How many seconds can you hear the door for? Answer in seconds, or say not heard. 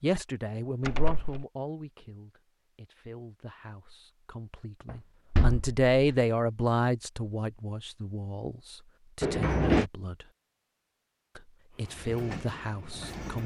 2 s.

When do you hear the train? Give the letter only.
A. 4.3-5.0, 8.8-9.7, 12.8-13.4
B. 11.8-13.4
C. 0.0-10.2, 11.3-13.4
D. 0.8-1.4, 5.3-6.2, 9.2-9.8
B.